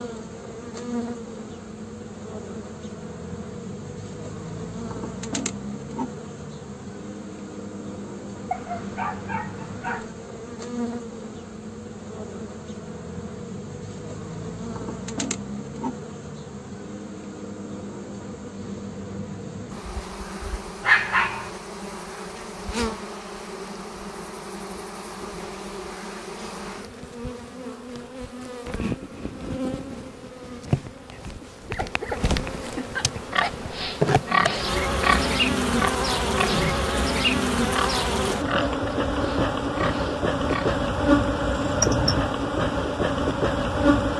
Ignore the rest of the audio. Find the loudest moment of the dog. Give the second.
21 s.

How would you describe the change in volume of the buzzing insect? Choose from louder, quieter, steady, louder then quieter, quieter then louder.
louder.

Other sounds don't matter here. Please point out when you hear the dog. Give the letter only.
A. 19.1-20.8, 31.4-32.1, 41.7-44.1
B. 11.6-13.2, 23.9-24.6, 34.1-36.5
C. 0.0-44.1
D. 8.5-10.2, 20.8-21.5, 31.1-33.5
D.